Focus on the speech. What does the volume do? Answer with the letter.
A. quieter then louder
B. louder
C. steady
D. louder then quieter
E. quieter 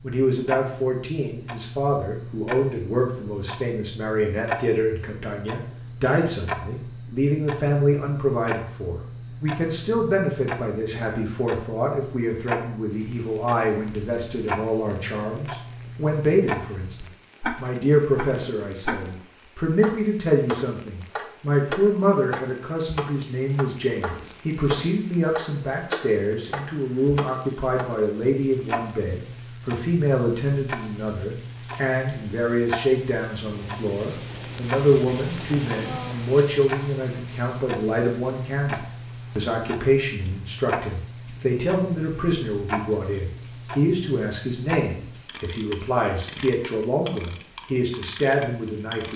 C.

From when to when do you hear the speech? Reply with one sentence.
You can hear the speech from 0.0 to 49.1 s.